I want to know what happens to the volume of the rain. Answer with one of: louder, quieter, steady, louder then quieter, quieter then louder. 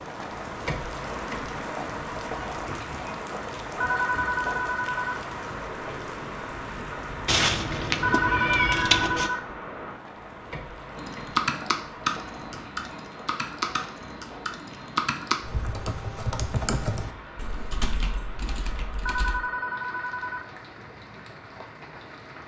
quieter.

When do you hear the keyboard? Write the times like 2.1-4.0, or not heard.
10.9-19.4.